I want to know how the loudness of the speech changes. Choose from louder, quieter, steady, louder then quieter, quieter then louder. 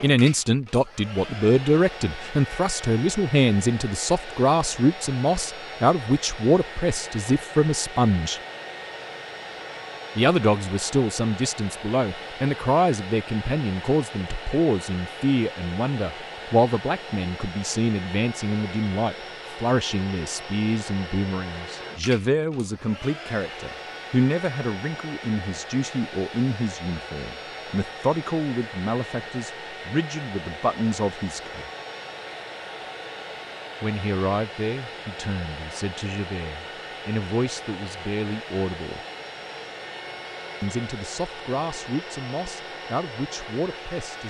quieter.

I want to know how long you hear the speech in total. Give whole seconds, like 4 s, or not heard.
39 s.